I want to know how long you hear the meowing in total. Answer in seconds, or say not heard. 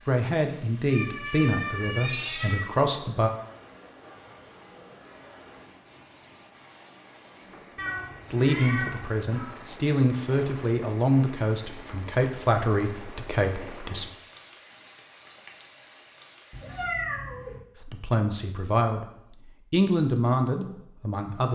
5 s.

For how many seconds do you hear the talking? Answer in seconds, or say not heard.
12 s.